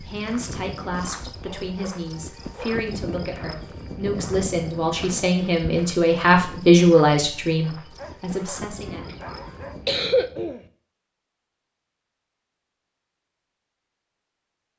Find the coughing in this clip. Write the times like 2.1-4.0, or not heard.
9.1-10.6.